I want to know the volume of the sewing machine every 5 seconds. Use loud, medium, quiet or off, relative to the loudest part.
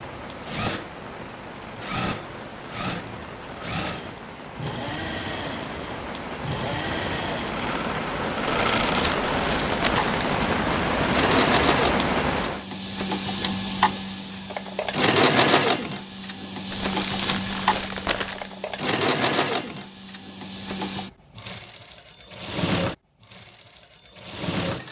medium, medium, loud, loud, medium.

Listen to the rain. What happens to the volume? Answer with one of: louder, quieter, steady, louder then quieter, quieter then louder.
louder.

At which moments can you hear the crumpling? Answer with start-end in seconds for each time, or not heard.
8.6-10.3, 16.7-18.5.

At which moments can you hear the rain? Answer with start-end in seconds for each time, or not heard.
0.0-12.7.